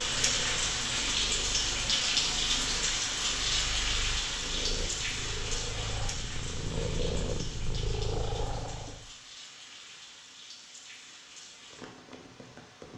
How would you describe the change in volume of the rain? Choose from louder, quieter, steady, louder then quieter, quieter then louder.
quieter.